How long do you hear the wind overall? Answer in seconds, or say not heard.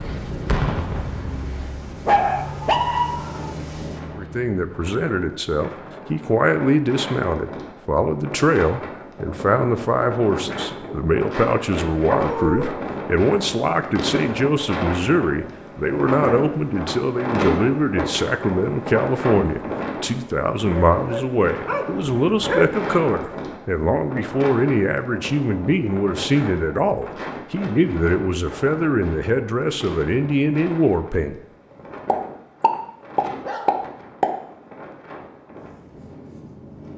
37 s.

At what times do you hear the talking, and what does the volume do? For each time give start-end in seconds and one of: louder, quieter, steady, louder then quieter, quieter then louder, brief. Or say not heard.
4.2-31.4 steady.